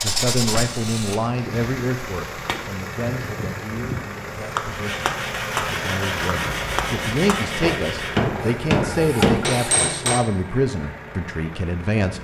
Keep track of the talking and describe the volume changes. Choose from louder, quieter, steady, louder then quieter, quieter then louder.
quieter then louder.